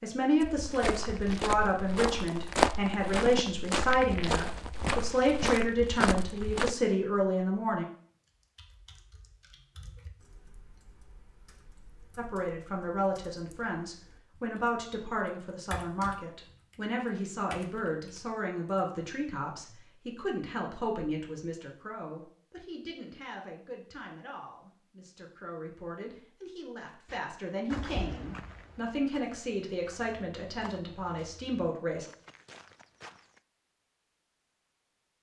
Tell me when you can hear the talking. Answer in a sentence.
You can hear the talking from 0.0 to 7.8 s and from 12.2 to 32.0 s.